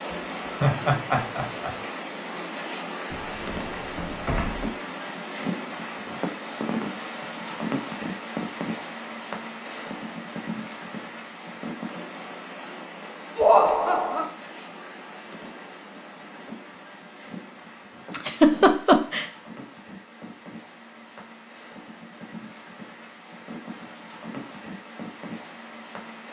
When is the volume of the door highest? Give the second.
4 s.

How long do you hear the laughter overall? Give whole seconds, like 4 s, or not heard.
3 s.